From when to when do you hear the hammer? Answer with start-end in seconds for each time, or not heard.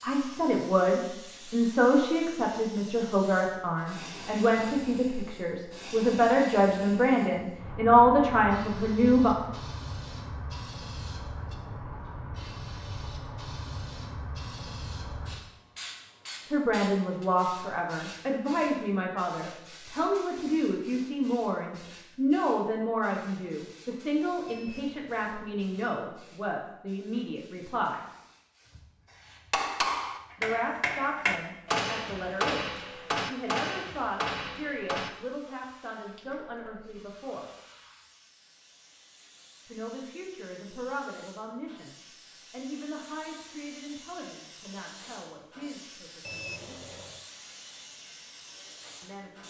29.5-35.1.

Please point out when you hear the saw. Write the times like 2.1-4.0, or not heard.
not heard.